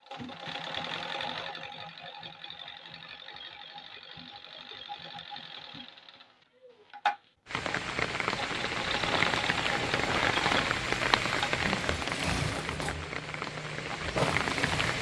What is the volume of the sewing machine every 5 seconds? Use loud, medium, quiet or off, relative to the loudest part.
medium, loud, loud.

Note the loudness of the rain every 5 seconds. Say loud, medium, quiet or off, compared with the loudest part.
off, loud, loud.